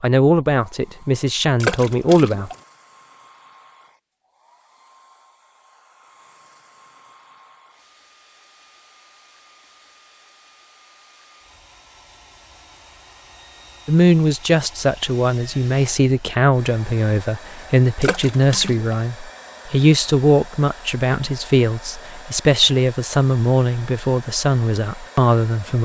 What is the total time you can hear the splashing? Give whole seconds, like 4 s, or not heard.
2 s.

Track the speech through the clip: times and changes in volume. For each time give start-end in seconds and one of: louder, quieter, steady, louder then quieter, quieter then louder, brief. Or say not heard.
0.0-2.5 brief
13.8-25.7 steady.